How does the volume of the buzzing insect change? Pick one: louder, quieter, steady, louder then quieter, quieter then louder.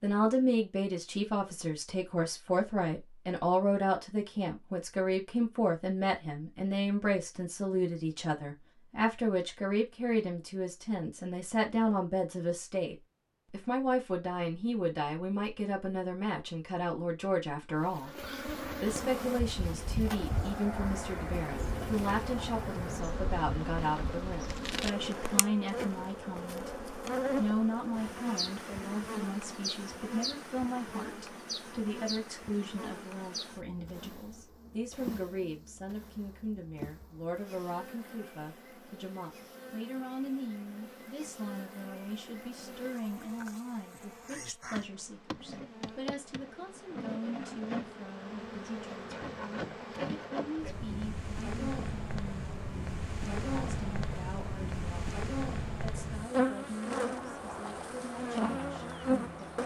quieter then louder.